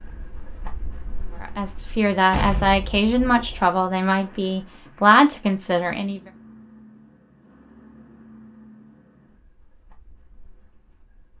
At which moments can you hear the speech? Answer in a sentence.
You can hear the speech from 1.4 to 6.2 s.